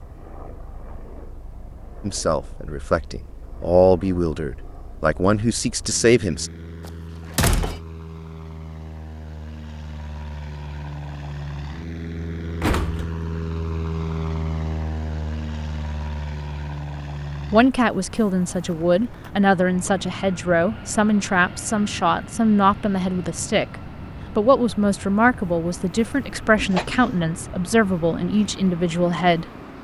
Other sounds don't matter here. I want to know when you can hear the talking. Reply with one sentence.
You can hear the talking from 2.0 to 6.5 s, from 17.5 to 23.8 s and from 24.4 to 29.4 s.